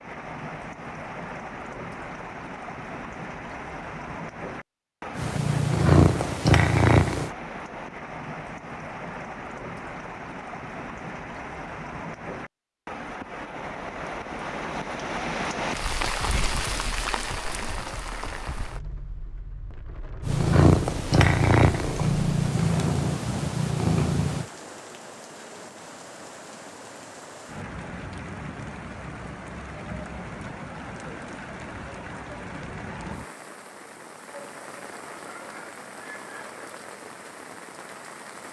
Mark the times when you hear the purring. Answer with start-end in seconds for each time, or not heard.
5.2-7.3, 20.2-24.4.